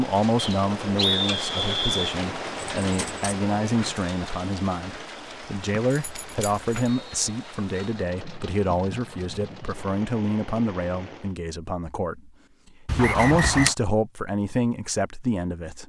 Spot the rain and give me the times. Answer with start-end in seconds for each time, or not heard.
0.0-11.3.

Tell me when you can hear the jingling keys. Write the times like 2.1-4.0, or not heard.
2.8-3.4, 5.9-6.9, 12.8-13.8.